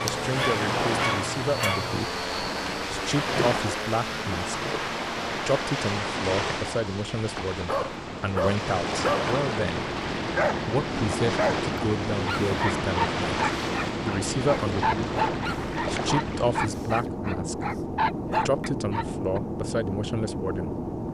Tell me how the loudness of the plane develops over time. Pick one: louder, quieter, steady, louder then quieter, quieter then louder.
quieter then louder.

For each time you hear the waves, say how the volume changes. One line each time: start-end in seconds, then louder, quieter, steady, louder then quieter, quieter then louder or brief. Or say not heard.
0.1-16.9 steady.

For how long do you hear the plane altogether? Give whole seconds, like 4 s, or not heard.
21 s.